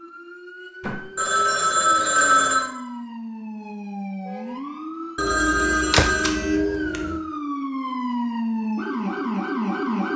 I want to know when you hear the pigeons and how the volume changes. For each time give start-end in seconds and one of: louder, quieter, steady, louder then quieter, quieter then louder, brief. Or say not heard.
not heard.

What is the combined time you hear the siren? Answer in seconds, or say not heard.
10 s.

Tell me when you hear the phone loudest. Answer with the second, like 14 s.
2 s.